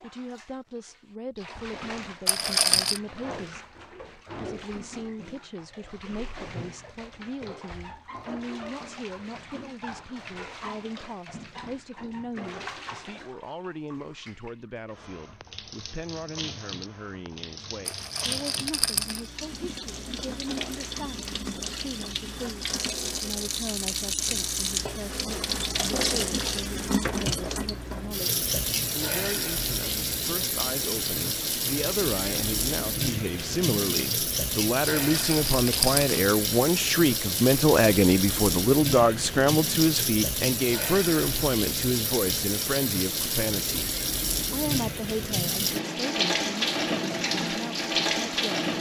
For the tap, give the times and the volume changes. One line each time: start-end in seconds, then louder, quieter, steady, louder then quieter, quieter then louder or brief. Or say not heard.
0.0-48.7 louder.